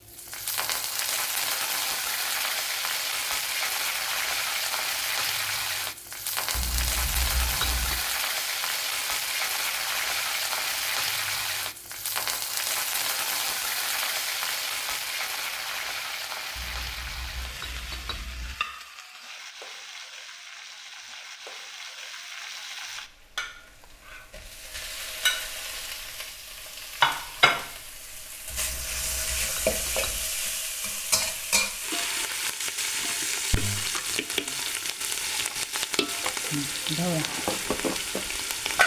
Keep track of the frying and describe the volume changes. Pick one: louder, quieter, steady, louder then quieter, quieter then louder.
quieter then louder.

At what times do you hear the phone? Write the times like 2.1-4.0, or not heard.
not heard.